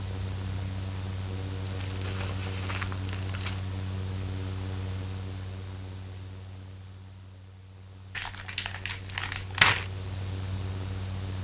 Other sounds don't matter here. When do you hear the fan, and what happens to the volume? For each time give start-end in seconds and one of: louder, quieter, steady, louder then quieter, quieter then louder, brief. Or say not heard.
0.0-11.3 quieter then louder.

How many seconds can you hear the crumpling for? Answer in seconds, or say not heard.
4 s.